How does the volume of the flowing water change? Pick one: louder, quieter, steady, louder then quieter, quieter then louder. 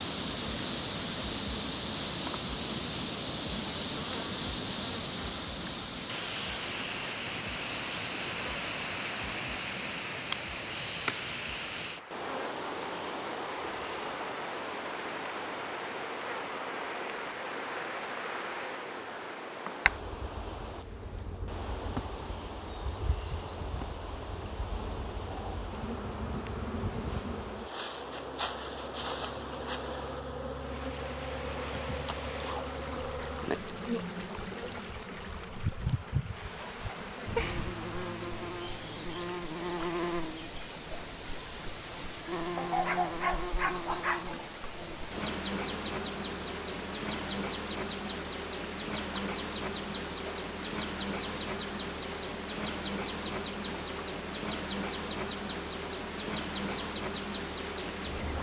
quieter.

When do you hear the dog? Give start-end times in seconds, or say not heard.
42.5-44.4.